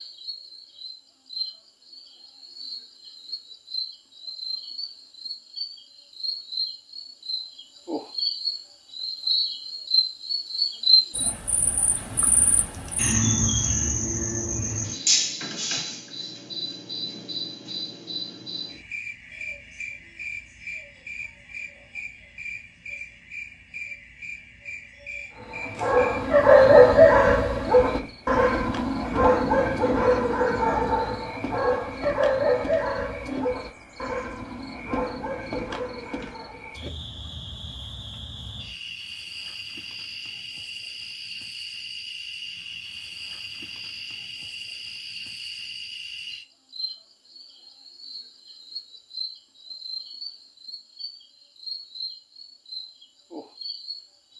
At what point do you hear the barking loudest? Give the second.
27 s.